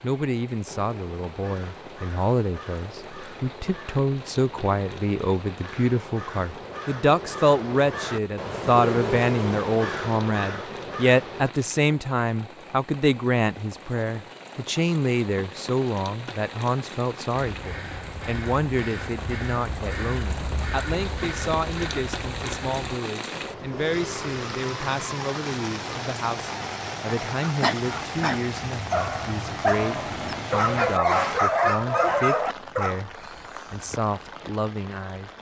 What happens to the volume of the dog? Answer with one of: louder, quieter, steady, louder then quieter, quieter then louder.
louder.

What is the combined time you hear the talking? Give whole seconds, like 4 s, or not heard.
35 s.